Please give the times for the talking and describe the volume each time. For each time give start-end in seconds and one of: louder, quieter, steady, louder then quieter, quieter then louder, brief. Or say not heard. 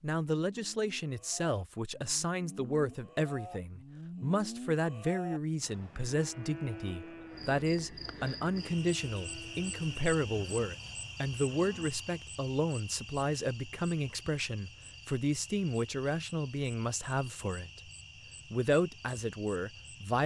0.0-17.9 steady
18.5-20.2 brief.